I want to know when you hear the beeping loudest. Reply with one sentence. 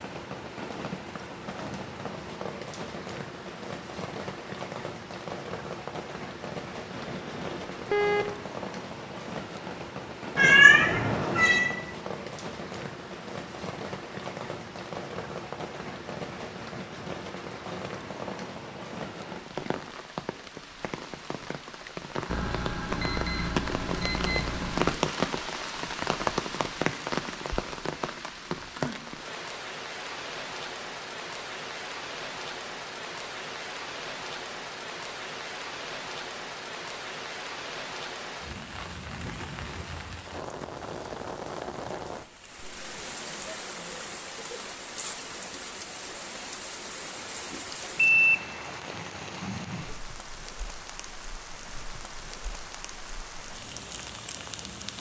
The volume of the beeping peaks at 48 seconds.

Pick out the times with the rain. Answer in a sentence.
You can hear the rain from 0.0 to 54.9 s.